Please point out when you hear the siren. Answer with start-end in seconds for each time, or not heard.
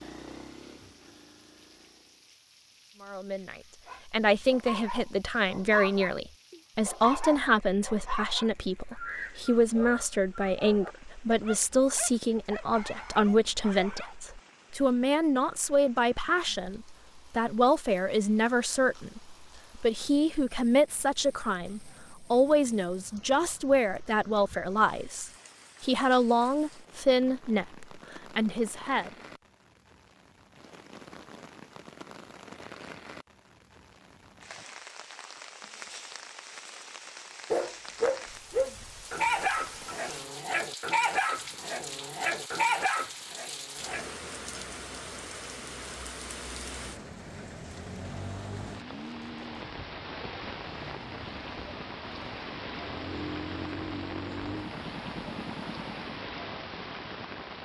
not heard.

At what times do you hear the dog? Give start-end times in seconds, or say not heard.
3.9-14.2, 37.5-44.1.